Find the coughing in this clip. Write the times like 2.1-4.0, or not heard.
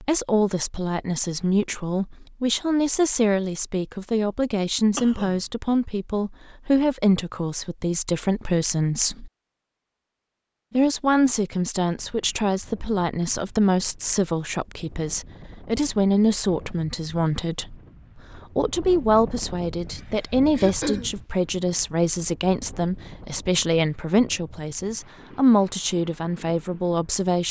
5.0-5.4, 20.6-21.1.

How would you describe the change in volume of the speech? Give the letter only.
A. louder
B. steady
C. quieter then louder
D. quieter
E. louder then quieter
B.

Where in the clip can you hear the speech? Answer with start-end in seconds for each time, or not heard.
0.0-9.3, 10.7-17.8, 18.4-27.4.